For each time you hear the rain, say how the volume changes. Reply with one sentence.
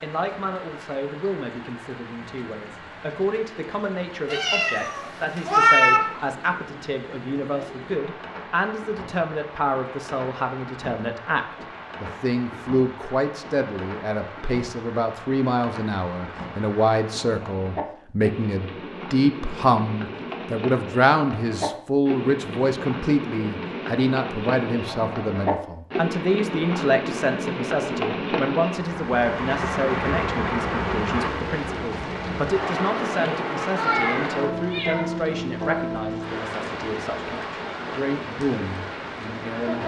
You can hear the rain from 0.0 to 39.8 s, getting louder.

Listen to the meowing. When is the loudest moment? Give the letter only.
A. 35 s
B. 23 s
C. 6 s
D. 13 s
C.